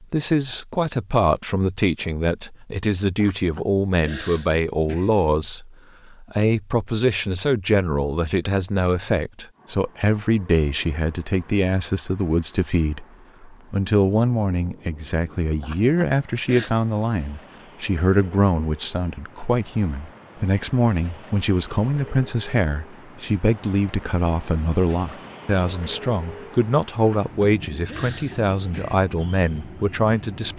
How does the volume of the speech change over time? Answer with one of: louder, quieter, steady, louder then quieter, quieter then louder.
steady.